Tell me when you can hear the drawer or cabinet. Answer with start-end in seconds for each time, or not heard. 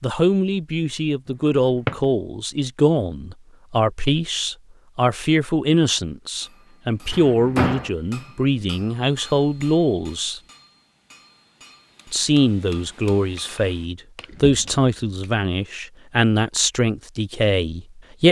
7.1-7.9, 14.2-14.8.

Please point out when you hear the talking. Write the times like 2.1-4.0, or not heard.
0.0-10.4, 12.1-18.2.